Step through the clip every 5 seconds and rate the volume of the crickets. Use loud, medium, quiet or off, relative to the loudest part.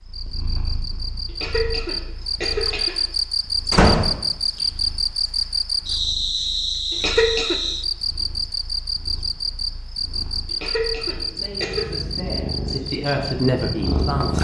loud, loud, medium.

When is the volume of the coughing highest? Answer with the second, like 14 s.
7 s.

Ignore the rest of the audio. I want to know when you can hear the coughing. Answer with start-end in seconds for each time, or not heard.
1.2-3.0, 6.9-7.6, 10.4-11.9.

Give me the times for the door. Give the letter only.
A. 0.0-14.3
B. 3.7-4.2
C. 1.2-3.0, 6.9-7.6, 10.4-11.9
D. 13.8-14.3
B.